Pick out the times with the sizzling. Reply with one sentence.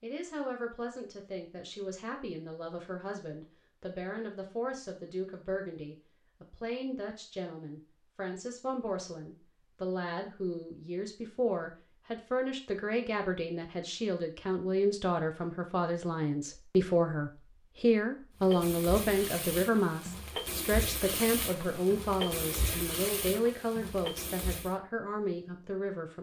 You can hear the sizzling from 18.4 to 24.8 s.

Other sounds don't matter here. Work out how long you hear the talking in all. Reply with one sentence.
You can hear the talking for 26 seconds altogether.